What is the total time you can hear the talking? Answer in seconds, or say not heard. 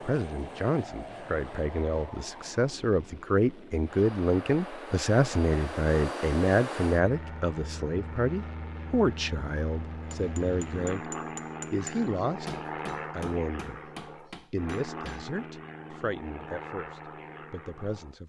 18 s.